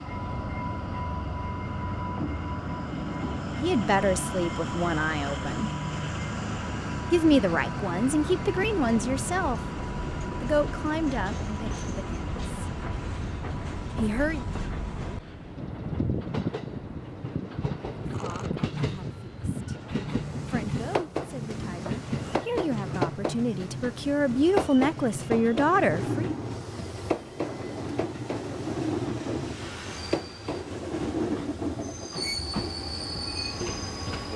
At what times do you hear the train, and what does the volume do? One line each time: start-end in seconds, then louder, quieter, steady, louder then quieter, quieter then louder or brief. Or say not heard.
0.0-34.3 steady.